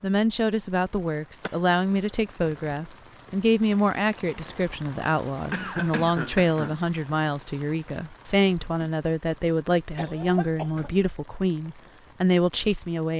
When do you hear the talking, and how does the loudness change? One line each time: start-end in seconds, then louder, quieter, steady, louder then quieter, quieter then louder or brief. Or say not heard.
0.0-13.1 steady.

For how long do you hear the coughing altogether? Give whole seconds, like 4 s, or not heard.
3 s.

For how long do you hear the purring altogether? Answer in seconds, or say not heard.
not heard.